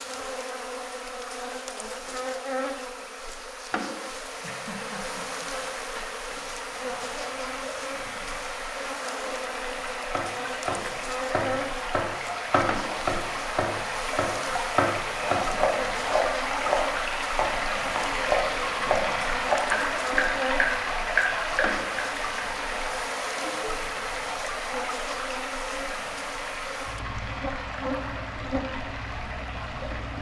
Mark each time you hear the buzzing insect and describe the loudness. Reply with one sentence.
The buzzing insect can be heard from 0.0 to 30.1 s, at a steady volume.